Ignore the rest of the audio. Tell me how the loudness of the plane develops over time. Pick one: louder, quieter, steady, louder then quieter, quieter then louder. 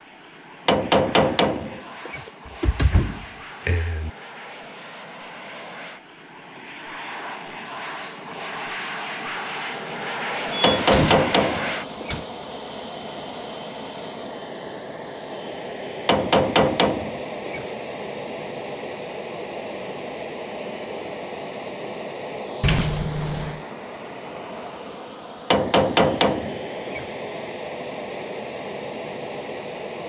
louder.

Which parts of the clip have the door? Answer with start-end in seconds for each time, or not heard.
2.5-4.1, 10.5-12.2, 22.6-23.6.